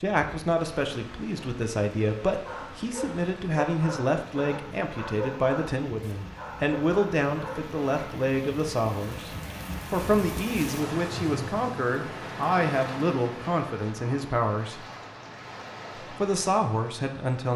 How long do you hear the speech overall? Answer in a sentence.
The speech can be heard for 16 seconds in total.